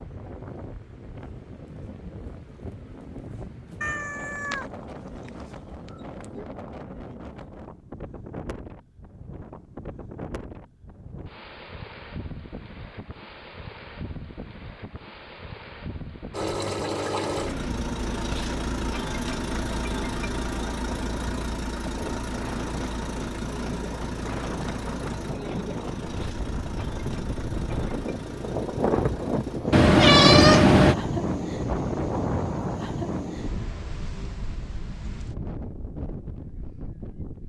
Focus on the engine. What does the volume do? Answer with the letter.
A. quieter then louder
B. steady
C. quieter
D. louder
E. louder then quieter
C.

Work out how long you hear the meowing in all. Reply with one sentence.
The meowing can be heard for 4 seconds in total.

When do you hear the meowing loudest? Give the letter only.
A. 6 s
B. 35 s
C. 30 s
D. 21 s
C.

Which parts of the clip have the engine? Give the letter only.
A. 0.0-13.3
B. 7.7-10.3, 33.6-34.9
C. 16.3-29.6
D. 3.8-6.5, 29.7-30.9
C.